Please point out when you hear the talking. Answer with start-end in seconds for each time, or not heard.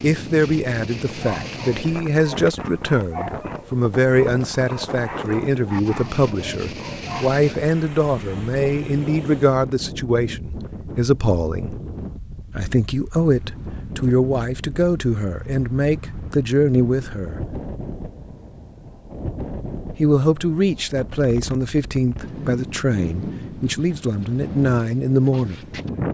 0.0-11.8, 12.6-17.6, 19.9-25.8.